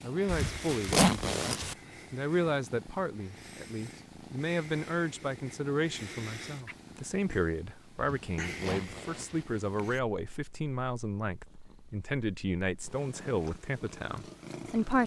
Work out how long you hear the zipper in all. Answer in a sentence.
The zipper can be heard for 3 seconds in total.